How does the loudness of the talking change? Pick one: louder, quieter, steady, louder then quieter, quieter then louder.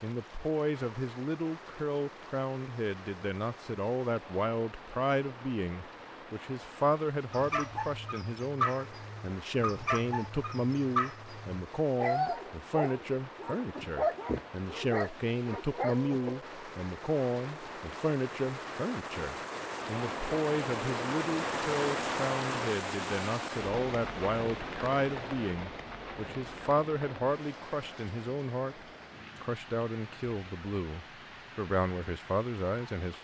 steady.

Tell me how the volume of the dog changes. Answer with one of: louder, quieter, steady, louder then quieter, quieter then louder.
steady.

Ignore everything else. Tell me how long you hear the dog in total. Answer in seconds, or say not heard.
9 s.